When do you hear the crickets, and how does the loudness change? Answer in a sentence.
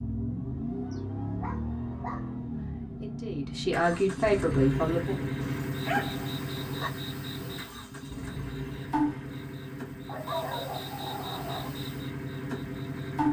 You can hear the crickets from 4.7 to 13.2 s, getting louder then quieter.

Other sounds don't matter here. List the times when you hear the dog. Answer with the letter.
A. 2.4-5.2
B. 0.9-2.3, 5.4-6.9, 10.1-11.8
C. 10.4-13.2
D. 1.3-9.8
B.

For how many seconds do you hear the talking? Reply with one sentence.
The talking can be heard for 3 seconds in total.